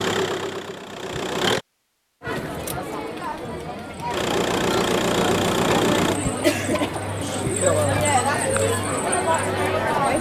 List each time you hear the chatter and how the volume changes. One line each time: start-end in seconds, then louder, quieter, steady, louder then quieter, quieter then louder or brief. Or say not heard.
2.2-10.1 louder.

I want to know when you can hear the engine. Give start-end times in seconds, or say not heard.
0.0-1.6, 4.0-6.2.